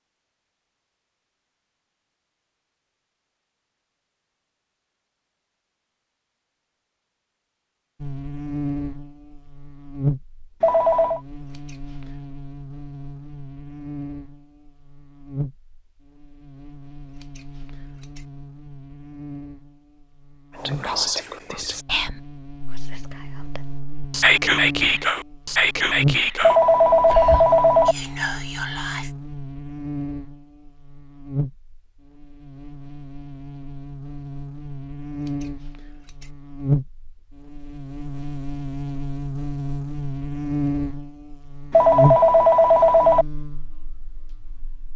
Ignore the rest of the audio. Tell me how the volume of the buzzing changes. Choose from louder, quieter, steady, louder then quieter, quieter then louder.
quieter then louder.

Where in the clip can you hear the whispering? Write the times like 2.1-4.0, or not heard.
20.6-29.1.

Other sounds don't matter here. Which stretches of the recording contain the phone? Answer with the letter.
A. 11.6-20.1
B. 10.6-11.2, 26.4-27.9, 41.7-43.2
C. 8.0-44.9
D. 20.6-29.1
B.